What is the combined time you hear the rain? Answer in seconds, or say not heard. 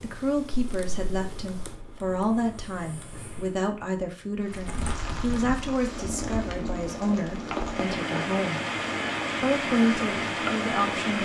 7 s.